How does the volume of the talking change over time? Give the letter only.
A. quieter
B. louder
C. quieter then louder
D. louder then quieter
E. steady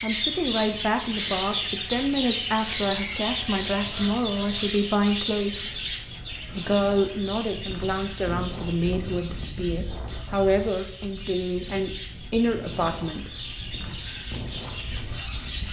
E.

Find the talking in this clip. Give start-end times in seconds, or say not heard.
0.0-5.8, 6.5-13.3.